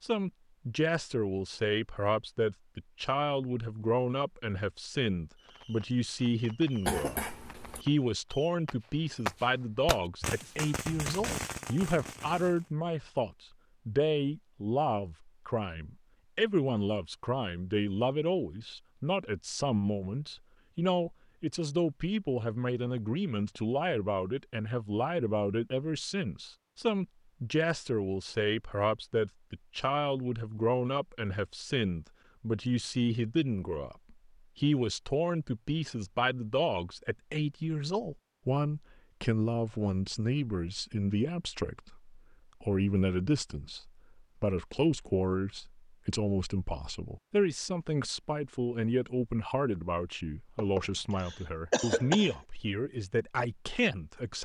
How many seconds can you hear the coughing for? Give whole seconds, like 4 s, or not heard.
3 s.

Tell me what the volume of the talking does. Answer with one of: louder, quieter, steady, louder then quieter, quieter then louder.
steady.